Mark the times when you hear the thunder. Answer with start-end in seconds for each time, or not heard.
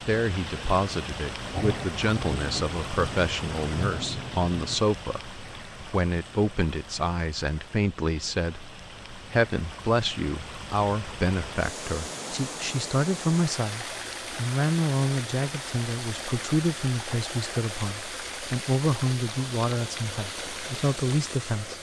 1.4-4.8.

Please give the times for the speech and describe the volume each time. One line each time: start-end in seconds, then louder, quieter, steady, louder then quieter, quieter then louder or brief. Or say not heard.
0.1-21.7 steady.